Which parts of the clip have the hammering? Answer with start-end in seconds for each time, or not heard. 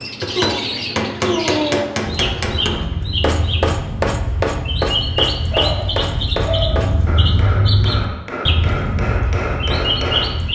0.0-10.4.